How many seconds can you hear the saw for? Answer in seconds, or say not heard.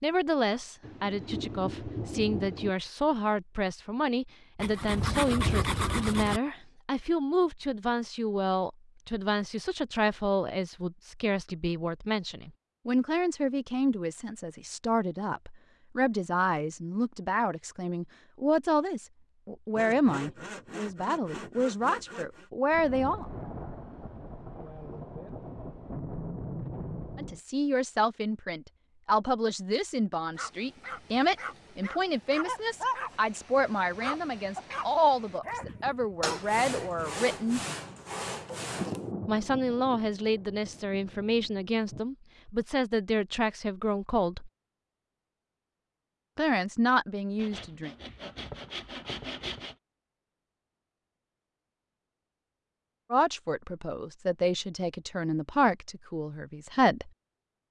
10 s.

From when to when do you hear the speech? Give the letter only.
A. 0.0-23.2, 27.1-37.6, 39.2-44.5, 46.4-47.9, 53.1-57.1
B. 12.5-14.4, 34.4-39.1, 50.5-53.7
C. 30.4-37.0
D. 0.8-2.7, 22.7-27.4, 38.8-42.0
A.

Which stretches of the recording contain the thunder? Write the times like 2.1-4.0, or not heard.
0.8-2.7, 22.7-27.4, 38.8-42.0.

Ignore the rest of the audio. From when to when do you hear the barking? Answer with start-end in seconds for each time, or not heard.
30.4-37.0.